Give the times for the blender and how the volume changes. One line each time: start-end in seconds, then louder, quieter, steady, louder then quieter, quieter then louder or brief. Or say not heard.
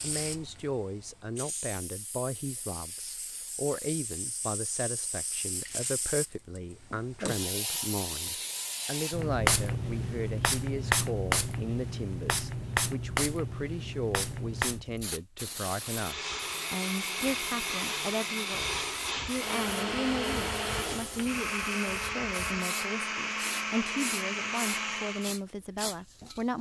15.8-25.4 steady.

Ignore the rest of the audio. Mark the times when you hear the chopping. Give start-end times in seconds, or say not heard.
not heard.